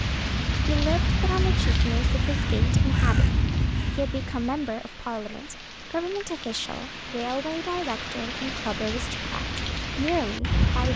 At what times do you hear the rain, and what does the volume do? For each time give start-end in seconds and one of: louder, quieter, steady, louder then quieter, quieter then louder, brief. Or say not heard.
0.0-10.9 quieter then louder.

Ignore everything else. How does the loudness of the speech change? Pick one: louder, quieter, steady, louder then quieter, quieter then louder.
steady.